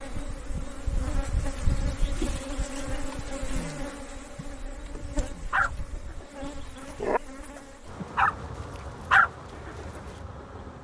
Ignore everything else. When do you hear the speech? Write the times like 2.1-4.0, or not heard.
not heard.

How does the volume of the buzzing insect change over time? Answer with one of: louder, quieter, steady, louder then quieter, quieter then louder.
quieter.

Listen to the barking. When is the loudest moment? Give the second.
9 s.